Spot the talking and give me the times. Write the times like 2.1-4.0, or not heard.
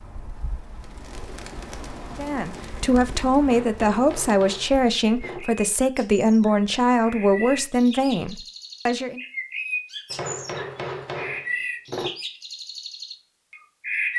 2.1-9.2.